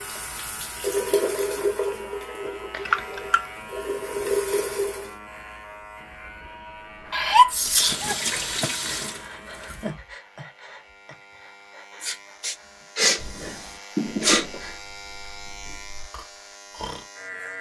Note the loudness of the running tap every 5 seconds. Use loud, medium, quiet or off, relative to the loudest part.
loud, loud, off, off.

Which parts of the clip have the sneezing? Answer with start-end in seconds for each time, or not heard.
2.7-3.4, 7.1-8.9, 12.0-14.6.